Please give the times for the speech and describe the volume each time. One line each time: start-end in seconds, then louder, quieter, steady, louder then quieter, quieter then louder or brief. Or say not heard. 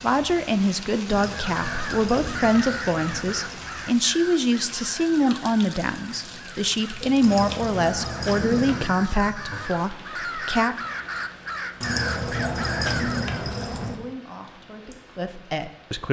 0.0-10.8 steady
13.8-16.0 brief.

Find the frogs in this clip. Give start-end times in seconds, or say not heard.
not heard.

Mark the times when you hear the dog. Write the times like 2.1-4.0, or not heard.
1.1-3.6, 7.2-8.9, 11.8-14.0.